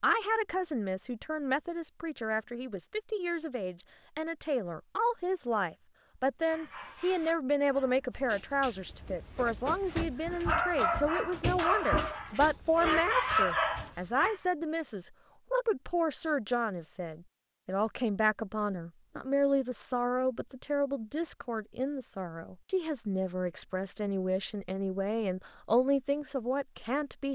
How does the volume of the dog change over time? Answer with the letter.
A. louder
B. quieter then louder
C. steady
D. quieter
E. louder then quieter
A.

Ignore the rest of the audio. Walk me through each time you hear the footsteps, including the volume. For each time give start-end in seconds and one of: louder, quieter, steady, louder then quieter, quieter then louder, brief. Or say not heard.
not heard.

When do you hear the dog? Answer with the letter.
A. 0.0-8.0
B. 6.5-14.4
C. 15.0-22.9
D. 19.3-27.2
B.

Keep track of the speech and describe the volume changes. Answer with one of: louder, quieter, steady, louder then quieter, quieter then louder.
steady.